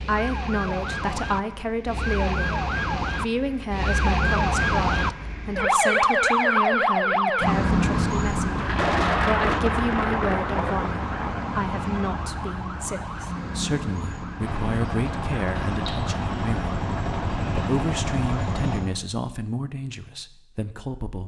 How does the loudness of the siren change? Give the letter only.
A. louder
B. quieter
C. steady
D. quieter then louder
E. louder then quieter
E.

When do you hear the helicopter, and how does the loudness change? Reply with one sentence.
You can hear the helicopter from 14.4 to 18.8 s, at a steady volume.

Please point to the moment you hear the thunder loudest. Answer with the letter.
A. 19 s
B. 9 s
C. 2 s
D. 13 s
B.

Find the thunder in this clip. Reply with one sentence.
You can hear the thunder from 8.6 to 11.4 s.